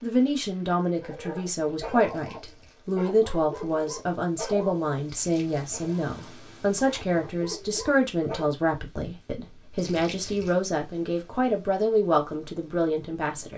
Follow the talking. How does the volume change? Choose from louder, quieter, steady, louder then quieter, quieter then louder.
steady.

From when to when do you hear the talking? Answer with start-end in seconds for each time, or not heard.
0.0-13.5.